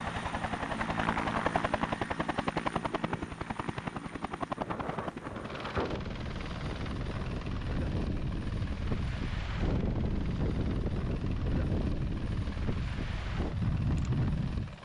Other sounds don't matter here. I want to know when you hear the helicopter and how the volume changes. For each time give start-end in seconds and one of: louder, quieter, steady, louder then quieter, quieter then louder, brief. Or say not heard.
0.0-14.8 quieter.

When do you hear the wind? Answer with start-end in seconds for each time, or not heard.
4.3-14.8.